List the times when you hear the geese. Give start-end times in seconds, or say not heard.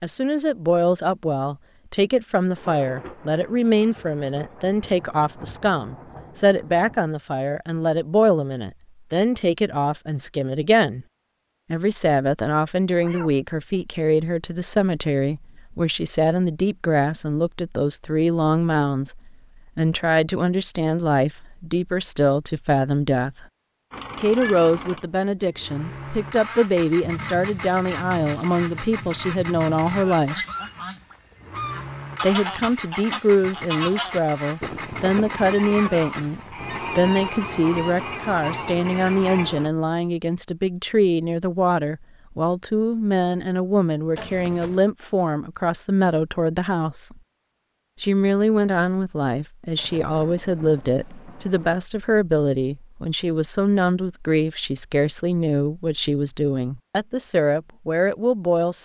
30.4-39.5.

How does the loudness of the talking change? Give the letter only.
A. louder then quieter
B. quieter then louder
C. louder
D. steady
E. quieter
D.